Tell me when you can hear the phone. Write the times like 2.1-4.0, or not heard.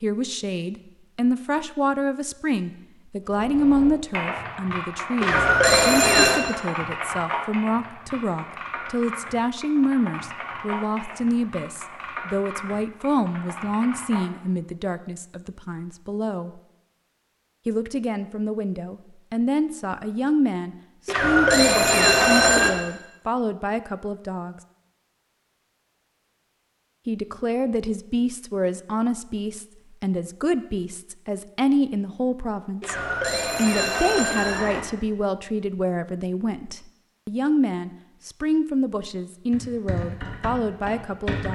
5.2-6.4, 21.1-22.7, 32.8-34.9.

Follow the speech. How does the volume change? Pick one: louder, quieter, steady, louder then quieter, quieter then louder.
steady.